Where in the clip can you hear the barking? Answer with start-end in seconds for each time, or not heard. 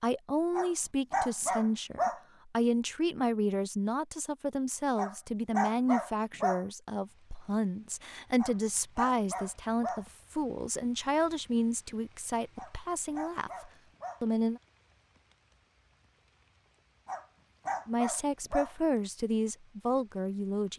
0.6-2.2, 5.0-6.7, 8.3-10.1, 12.6-14.2, 17.1-18.8.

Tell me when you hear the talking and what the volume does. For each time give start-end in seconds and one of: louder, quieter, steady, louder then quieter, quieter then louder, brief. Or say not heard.
0.0-14.6 steady
17.9-20.7 brief.